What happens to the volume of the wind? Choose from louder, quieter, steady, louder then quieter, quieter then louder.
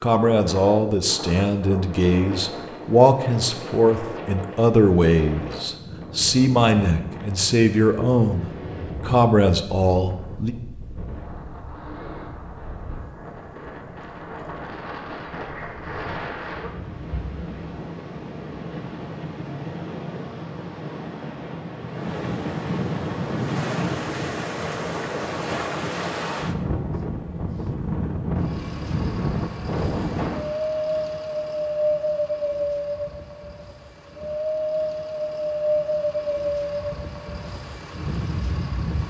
louder.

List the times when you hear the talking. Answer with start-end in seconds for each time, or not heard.
0.0-10.6.